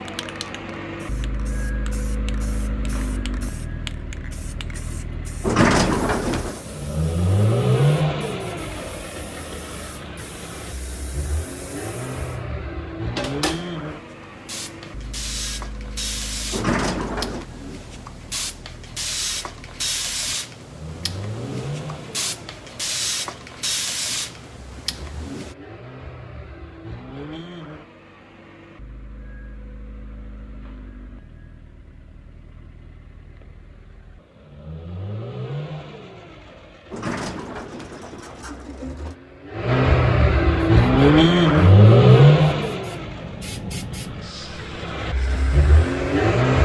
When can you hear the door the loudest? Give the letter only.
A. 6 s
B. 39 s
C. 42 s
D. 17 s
A.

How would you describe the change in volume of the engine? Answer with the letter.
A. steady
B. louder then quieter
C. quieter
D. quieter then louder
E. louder
D.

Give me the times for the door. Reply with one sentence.
You can hear the door from 5.4 to 6.6 s, from 16.5 to 17.4 s and from 36.9 to 39.1 s.